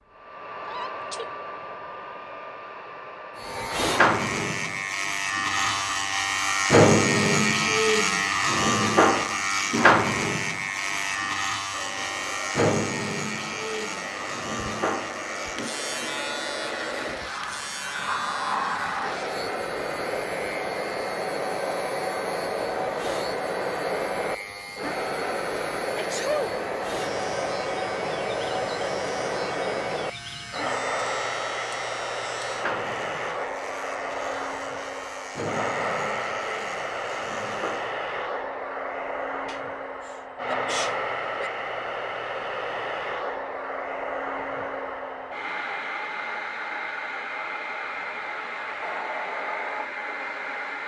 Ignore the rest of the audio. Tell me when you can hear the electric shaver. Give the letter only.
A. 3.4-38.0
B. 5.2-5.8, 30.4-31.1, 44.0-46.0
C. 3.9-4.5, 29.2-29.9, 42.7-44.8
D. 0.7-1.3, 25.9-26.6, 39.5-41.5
A.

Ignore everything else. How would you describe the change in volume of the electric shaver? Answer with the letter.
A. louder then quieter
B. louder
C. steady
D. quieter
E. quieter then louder
D.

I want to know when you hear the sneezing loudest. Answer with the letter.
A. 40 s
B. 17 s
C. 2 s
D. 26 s
D.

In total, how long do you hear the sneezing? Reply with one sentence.
The sneezing can be heard for 3 seconds in total.